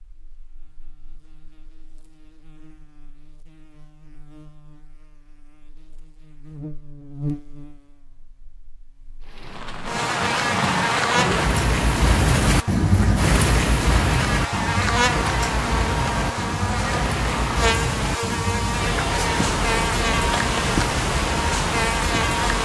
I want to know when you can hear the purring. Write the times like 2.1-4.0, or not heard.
not heard.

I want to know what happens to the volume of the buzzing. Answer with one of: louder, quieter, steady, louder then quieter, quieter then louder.
louder.